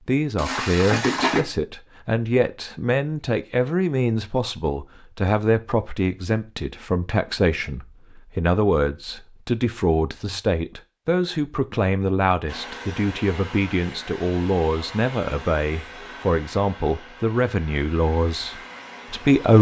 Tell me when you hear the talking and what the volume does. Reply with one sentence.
The talking can be heard from 0.1 to 19.5 s, at a steady volume.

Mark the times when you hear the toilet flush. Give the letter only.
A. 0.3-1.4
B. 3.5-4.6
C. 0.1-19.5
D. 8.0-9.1
A.